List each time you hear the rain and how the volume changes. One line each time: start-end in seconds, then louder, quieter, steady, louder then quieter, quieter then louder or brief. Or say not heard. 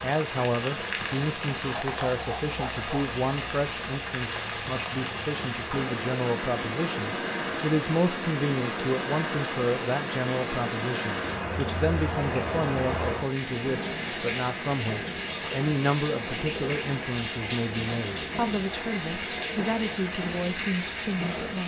0.0-21.6 steady.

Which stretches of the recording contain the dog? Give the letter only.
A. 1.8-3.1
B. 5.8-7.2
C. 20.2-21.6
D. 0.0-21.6
A.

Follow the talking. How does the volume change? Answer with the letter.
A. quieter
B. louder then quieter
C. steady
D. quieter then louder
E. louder
C.